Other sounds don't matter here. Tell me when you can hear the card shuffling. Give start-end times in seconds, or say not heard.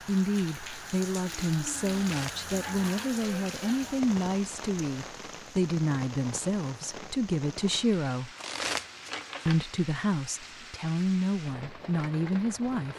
1.9-3.2, 8.3-9.7.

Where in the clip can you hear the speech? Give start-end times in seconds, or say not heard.
0.1-8.3, 9.4-12.9.